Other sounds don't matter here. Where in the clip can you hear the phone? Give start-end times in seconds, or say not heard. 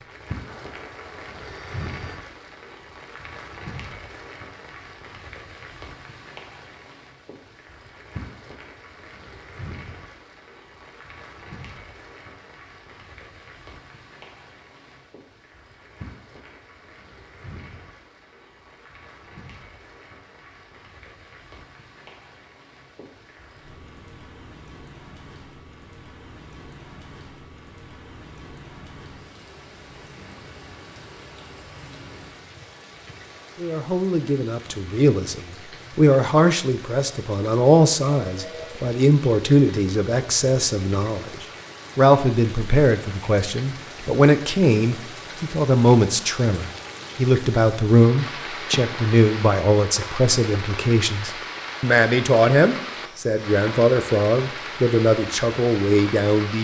0.5-2.2, 38.2-38.8.